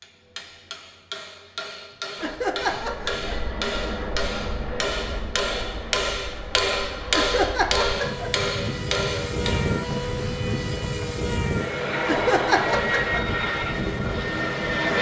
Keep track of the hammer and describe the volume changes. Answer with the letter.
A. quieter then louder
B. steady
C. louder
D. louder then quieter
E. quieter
C.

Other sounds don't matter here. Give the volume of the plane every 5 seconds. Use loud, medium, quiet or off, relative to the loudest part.
medium, medium, loud.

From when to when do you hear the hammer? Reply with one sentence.
The hammer can be heard from 0.0 to 9.8 s.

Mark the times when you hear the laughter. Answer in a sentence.
You can hear the laughter from 2.1 to 3.3 s, from 7.1 to 8.4 s and from 12.1 to 13.2 s.